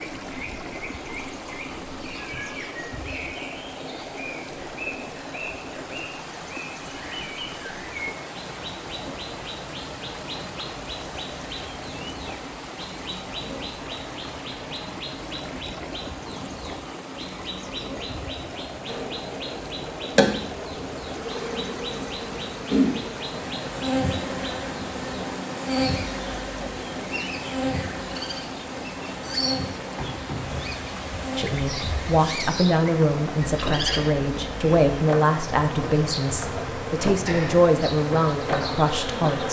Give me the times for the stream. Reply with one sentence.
The stream can be heard from 0.0 to 39.4 s.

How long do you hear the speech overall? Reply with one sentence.
The speech can be heard for 8 seconds in total.